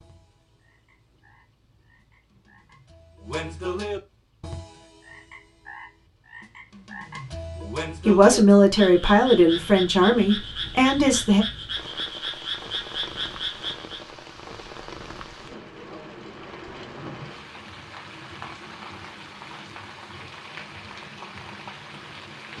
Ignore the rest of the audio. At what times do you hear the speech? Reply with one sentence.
You can hear the speech from 8.1 to 11.4 s.